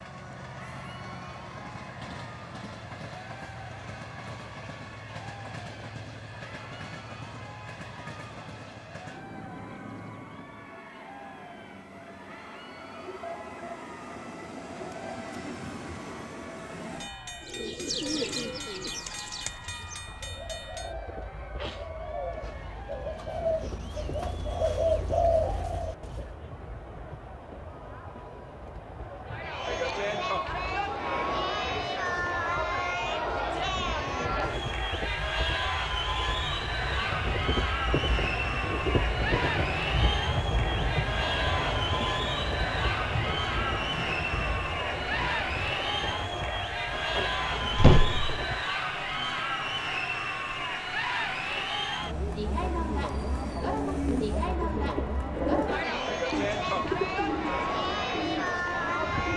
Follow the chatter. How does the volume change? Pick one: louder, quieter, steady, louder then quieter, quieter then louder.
louder.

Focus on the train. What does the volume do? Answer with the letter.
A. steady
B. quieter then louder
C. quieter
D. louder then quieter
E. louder
D.